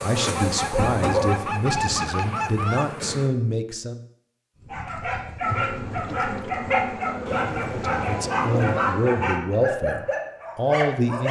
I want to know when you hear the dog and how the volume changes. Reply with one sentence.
You can hear the dog briefly from 0.0 to 2.4 s; and from 4.7 to 11.2 s, at a steady volume.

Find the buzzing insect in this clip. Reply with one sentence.
The buzzing insect can be heard from 0.0 to 3.3 s and from 5.4 to 9.4 s.